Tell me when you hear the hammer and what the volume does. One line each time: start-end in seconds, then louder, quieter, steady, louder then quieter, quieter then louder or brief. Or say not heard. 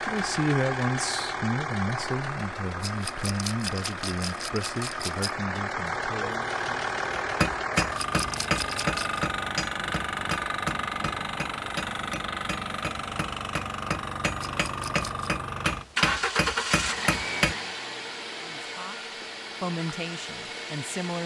7.4-17.6 quieter then louder.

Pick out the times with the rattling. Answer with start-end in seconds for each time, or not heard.
2.8-5.3, 7.8-9.2, 14.4-15.3.